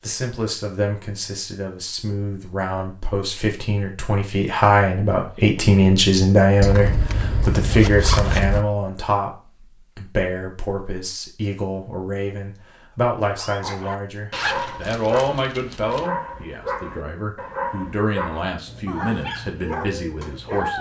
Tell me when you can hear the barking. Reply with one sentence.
The barking can be heard from 13.3 to 20.7 s.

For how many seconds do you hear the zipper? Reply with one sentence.
You can hear the zipper for 4 seconds altogether.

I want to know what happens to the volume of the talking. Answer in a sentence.
The volume of the talking goes up, then down.